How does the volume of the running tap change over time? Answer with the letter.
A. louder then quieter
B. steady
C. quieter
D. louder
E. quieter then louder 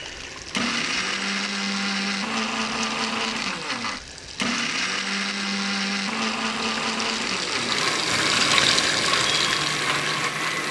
D.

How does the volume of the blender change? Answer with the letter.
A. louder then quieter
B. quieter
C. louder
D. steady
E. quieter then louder
D.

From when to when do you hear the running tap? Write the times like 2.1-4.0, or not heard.
0.0-10.6.